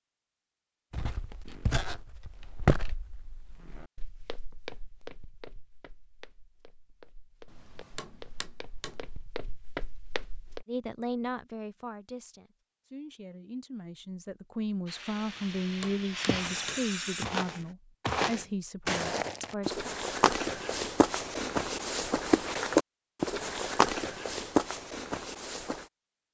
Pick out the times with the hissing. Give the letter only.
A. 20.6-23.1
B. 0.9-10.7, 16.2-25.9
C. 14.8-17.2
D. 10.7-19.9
C.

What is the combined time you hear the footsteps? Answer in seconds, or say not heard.
19 s.